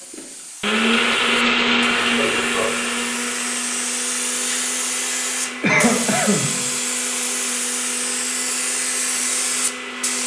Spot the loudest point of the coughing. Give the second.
6 s.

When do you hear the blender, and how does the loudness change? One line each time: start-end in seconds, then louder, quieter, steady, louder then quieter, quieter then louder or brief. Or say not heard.
0.1-10.2 quieter.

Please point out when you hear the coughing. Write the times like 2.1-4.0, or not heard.
1.9-2.7, 5.6-6.5.